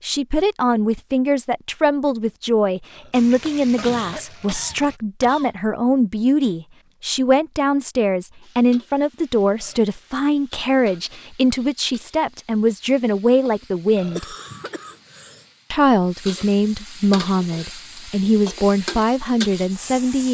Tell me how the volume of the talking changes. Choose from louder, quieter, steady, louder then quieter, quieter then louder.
steady.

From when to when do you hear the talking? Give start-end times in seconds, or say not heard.
0.0-14.2, 15.7-20.3.